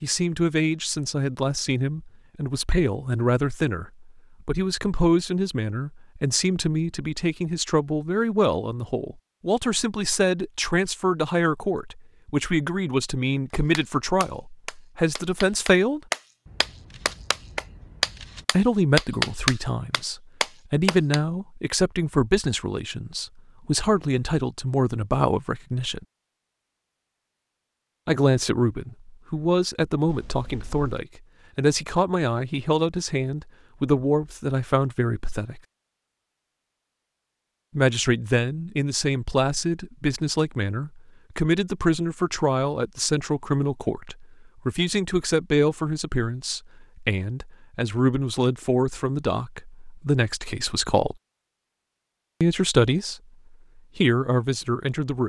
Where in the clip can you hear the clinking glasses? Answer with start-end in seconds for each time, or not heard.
not heard.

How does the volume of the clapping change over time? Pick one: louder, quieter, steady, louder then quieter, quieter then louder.
louder.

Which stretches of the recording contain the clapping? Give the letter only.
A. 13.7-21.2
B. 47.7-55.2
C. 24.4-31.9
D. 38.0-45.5
A.